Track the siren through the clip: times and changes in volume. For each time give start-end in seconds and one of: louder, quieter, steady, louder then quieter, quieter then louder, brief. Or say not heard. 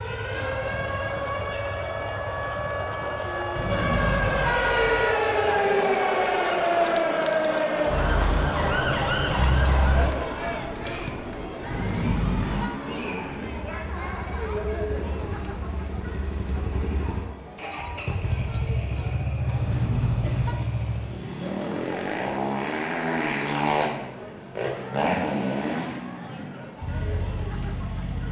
0.0-10.1 louder.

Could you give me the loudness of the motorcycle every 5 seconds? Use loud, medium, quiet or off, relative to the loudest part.
quiet, quiet, medium, loud, loud, loud.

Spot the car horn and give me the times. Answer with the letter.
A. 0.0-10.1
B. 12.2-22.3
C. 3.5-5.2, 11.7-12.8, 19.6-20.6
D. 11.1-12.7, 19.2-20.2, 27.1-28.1
C.